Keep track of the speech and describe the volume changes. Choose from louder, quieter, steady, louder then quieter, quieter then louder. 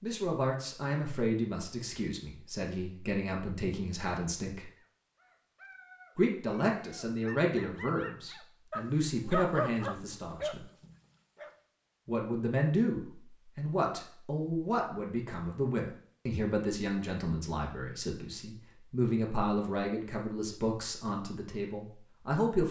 steady.